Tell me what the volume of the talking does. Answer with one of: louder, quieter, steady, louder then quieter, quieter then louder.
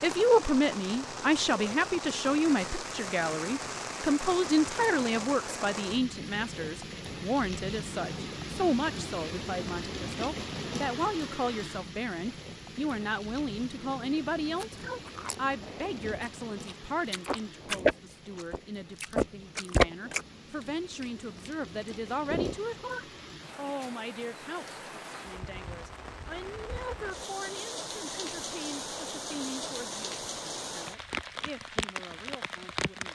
quieter.